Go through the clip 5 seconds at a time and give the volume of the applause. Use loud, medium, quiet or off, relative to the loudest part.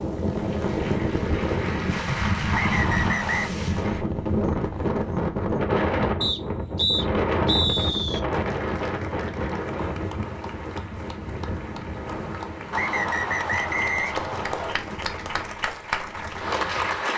medium, quiet, medium, loud.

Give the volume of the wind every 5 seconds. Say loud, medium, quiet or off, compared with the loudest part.
loud, loud, medium, quiet.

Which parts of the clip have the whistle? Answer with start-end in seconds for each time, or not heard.
2.5-3.5, 6.2-8.2, 12.7-14.8.